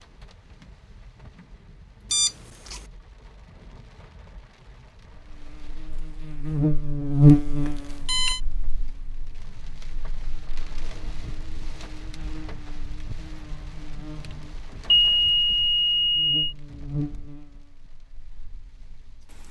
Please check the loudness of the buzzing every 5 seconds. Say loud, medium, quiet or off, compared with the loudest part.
off, loud, quiet, quiet.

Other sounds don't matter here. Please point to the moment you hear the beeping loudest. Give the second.
15 s.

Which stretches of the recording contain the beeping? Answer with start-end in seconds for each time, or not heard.
2.1-2.8, 7.7-8.4, 14.9-16.6.